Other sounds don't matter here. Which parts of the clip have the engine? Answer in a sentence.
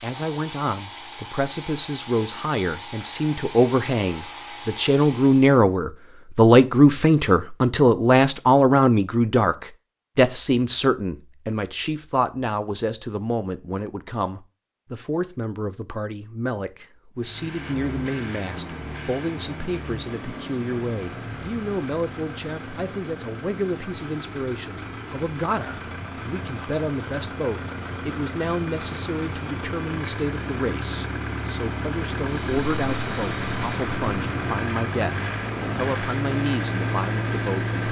You can hear the engine from 17.1 to 37.8 s.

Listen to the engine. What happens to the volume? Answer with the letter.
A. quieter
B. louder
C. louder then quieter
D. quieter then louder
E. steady
B.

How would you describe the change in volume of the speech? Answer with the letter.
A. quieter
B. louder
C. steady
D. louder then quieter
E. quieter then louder
A.